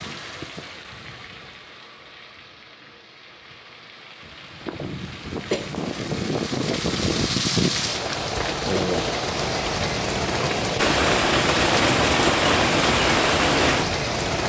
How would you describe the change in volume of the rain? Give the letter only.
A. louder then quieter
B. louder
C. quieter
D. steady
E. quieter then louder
B.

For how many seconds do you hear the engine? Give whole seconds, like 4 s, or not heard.
5 s.